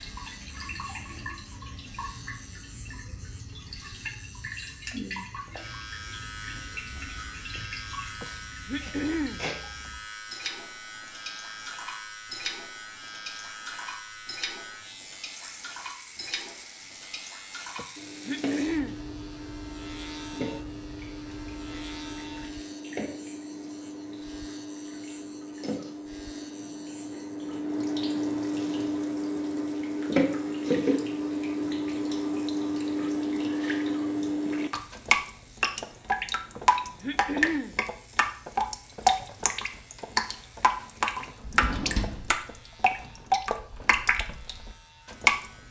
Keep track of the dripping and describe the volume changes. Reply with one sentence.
The loudness of the dripping goes up.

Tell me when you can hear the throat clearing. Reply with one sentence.
You can hear the throat clearing from 8.2 to 9.9 s, from 17.8 to 18.9 s and from 36.5 to 37.8 s.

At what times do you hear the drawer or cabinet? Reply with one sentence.
You can hear the drawer or cabinet from 41.4 to 42.3 s.